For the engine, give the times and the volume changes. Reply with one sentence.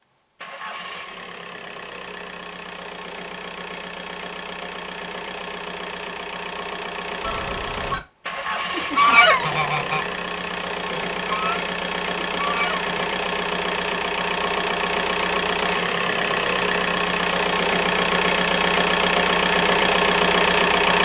You can hear the engine from 0.3 to 20.9 s, getting louder.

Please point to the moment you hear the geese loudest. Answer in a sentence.
The volume of the geese peaks at 9 seconds.